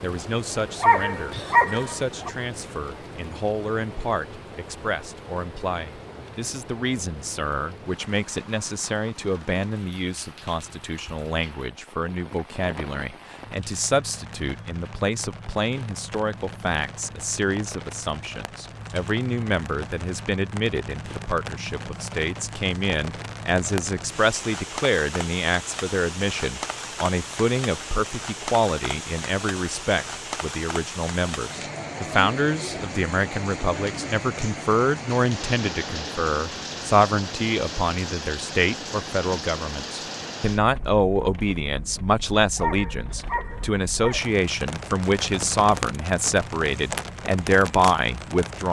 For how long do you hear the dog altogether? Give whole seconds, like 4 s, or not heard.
3 s.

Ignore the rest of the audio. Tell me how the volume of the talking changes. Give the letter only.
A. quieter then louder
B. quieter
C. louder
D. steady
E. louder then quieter
C.